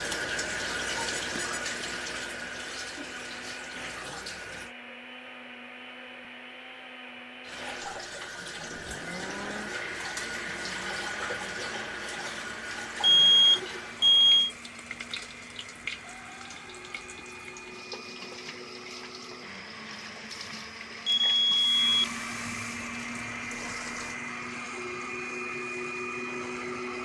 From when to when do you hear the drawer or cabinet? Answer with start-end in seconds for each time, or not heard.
not heard.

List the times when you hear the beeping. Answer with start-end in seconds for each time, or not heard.
1.0-1.6, 13.0-14.5, 21.1-21.9.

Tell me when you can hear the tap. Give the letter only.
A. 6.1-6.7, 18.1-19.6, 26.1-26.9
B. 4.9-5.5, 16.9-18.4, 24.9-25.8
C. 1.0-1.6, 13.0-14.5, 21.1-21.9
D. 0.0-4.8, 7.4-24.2
D.